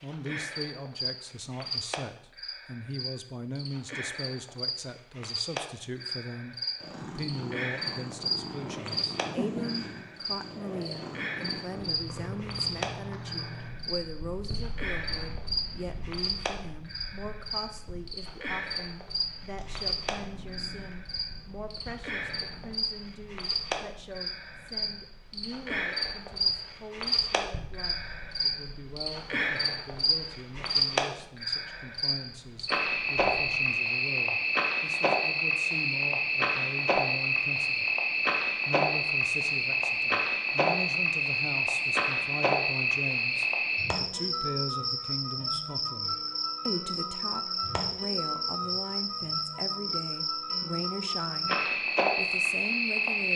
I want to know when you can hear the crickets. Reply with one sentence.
You can hear the crickets from 0.0 to 53.3 s.